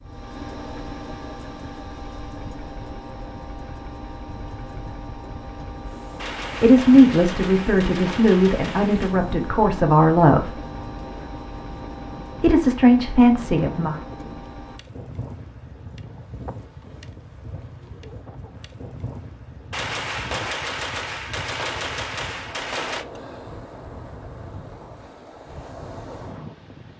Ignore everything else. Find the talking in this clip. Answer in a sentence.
You can hear the talking from 6.6 to 10.6 s and from 12.4 to 14.0 s.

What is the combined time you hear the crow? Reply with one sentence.
You can't hear the crow here.